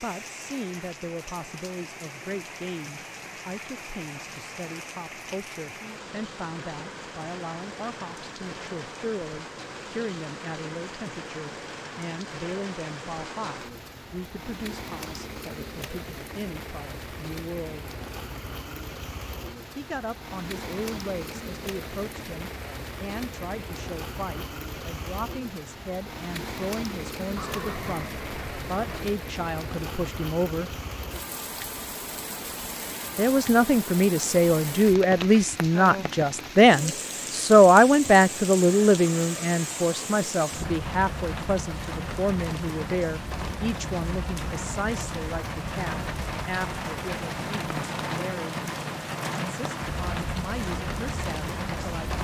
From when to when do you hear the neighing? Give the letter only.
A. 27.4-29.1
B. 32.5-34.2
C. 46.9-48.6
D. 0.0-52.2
A.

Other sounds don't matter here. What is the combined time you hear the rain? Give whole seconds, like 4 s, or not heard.
52 s.